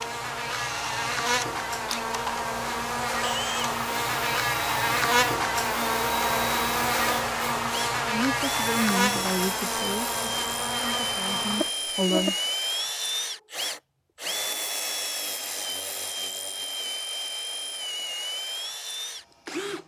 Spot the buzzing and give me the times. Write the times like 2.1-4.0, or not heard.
0.0-12.3.